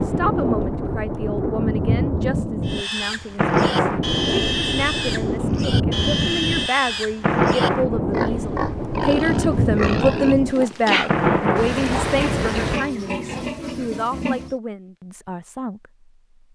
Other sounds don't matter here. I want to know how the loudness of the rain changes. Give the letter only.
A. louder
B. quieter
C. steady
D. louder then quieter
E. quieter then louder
C.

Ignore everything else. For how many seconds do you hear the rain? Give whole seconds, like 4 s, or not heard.
13 s.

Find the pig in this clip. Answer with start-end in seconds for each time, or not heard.
2.6-14.6.